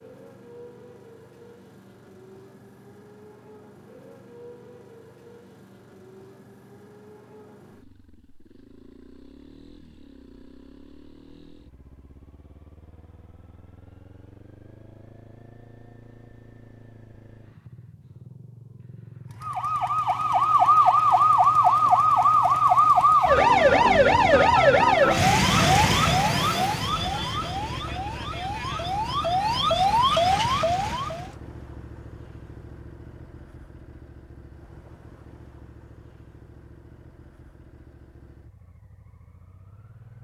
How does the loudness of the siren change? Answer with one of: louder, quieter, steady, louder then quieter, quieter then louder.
quieter then louder.